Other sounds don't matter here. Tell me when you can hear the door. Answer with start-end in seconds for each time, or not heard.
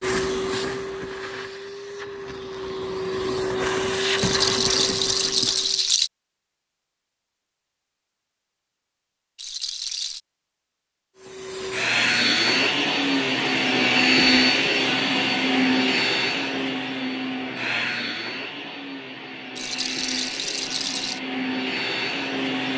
not heard.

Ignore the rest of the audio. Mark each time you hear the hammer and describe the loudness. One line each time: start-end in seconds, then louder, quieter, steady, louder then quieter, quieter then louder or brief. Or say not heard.
not heard.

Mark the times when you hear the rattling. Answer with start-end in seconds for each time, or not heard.
4.2-6.1, 9.3-10.2, 19.6-21.2.